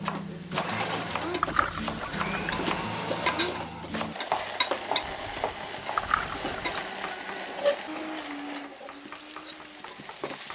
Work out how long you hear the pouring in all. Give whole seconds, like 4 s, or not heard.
2 s.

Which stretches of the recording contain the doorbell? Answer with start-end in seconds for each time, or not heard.
1.7-2.5, 6.8-7.8.